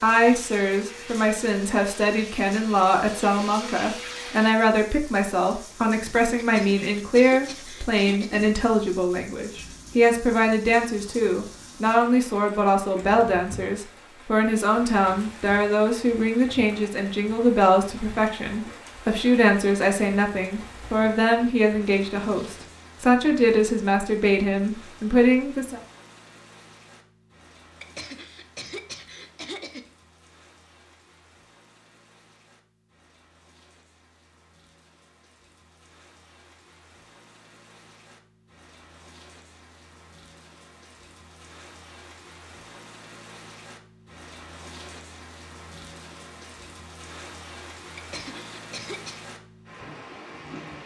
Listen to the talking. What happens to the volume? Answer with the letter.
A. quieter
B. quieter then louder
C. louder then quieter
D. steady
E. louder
D.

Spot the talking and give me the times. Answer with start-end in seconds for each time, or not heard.
0.0-25.8.